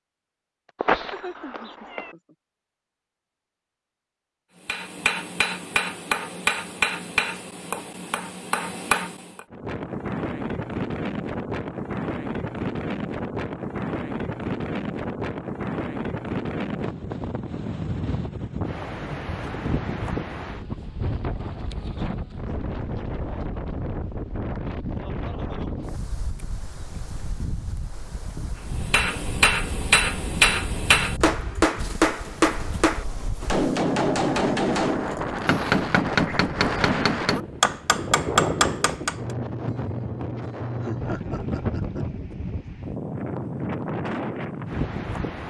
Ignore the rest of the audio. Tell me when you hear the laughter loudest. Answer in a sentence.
The volume of the laughter peaks at 41 seconds.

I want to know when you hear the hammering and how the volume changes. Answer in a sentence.
The hammering can be heard from 4.7 to 9.4 s, getting quieter then louder; and from 28.7 to 39.2 s, at a steady volume.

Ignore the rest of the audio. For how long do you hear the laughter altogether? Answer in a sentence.
You can hear the laughter for 3 seconds altogether.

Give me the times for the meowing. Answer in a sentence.
The meowing can be heard from 0.8 to 2.1 s.